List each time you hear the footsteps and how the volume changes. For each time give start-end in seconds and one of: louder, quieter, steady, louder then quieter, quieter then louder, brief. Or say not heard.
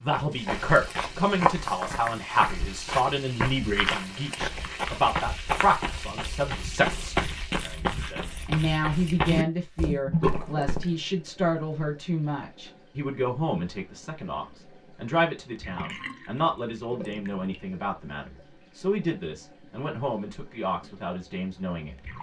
0.3-10.9 steady.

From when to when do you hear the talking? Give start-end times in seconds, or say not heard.
0.0-21.9.